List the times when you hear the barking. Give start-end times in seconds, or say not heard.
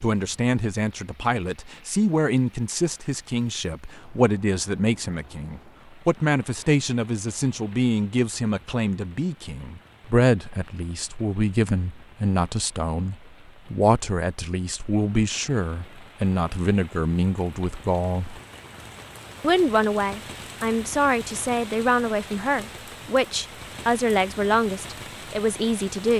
not heard.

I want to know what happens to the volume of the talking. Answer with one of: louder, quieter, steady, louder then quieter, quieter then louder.
steady.